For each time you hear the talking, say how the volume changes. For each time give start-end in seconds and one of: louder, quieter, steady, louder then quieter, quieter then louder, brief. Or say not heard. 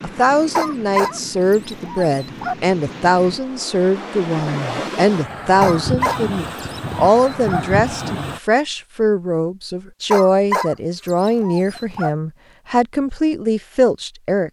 0.0-14.4 steady.